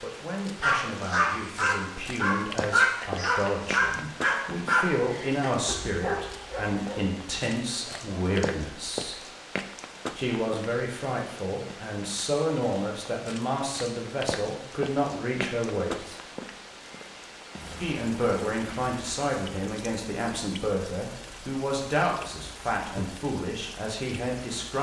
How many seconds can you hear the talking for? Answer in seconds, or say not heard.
22 s.